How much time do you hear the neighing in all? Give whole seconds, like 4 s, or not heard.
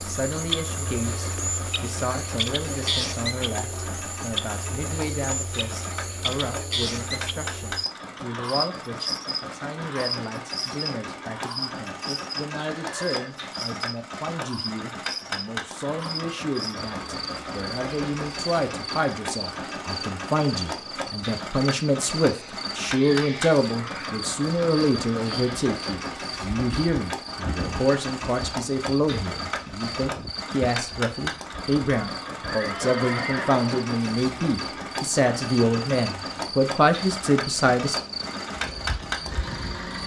2 s.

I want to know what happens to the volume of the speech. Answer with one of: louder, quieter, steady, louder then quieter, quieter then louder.
louder.